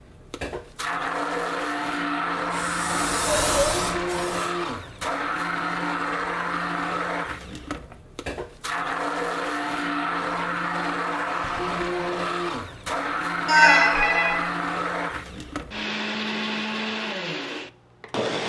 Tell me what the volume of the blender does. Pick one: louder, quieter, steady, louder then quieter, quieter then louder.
steady.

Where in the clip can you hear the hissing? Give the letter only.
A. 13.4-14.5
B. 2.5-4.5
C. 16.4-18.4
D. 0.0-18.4
B.